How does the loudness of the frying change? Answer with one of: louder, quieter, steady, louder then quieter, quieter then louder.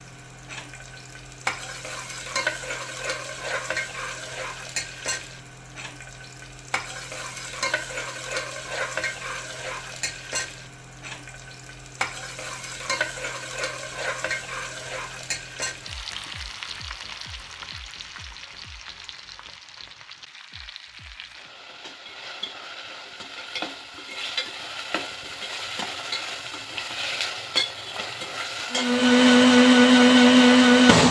quieter then louder.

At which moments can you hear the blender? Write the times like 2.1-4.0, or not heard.
28.7-31.0.